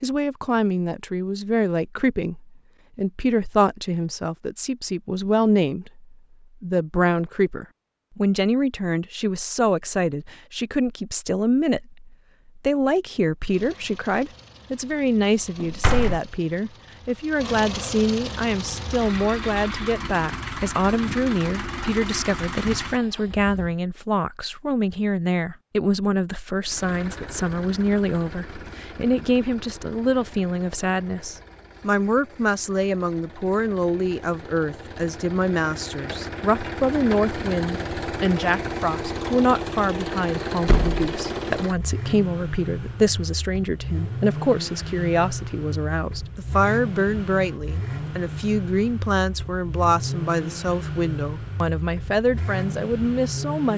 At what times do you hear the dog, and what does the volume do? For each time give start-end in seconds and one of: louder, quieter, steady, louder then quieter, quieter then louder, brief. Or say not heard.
not heard.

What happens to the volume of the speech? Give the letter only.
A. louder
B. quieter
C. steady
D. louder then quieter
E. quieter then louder
C.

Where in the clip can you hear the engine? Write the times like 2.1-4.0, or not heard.
13.4-23.8, 26.6-53.7.